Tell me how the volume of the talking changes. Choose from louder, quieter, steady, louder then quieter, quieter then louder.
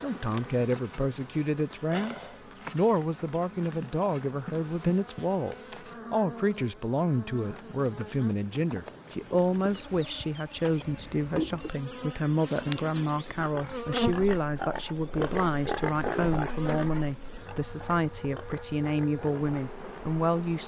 steady.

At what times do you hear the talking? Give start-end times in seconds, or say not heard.
0.0-20.6.